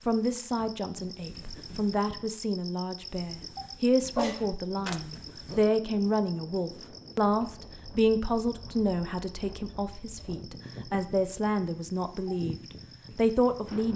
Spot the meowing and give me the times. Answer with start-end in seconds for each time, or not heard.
4.1-5.2.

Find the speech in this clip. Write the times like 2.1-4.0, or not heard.
0.1-12.6, 13.2-13.9.